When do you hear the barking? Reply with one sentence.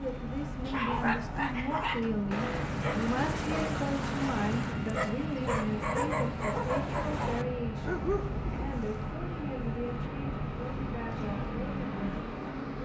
You can hear the barking from 0.7 to 8.8 s.